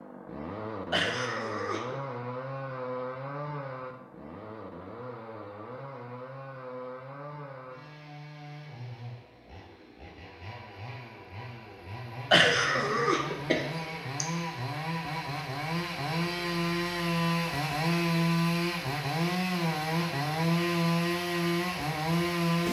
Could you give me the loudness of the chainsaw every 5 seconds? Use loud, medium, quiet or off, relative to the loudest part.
medium, quiet, medium, loud, loud.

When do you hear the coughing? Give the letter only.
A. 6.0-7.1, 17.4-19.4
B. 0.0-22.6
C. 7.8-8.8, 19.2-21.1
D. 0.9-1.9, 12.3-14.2
D.